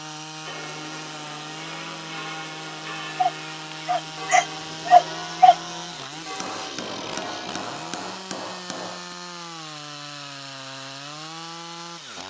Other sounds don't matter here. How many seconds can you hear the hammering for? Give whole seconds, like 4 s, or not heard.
3 s.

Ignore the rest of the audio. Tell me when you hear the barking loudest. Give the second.
5 s.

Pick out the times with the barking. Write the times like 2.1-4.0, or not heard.
3.1-5.5.